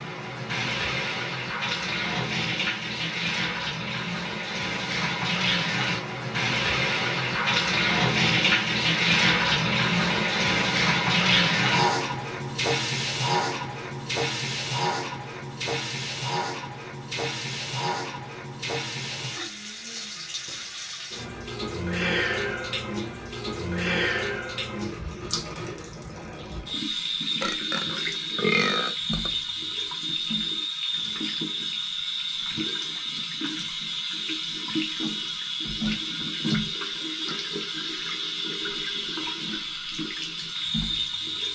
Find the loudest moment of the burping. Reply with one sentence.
The loudest moment of the burping is at 29 seconds.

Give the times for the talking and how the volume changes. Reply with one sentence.
You can't hear the talking here.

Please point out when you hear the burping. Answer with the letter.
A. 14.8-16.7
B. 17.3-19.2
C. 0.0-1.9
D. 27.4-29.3
D.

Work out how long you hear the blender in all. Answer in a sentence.
You can't hear the blender here.